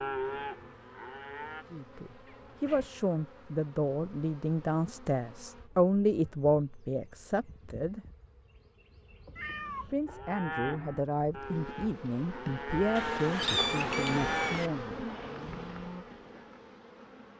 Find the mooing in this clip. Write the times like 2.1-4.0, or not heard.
0.0-1.6, 10.1-16.1.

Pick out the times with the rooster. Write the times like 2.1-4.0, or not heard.
not heard.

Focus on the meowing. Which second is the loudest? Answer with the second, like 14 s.
14 s.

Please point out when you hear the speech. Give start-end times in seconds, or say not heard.
1.7-8.0, 9.8-15.1.